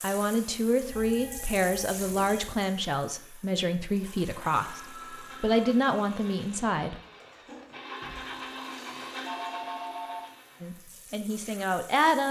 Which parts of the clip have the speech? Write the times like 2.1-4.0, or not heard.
0.0-7.0, 10.6-12.2.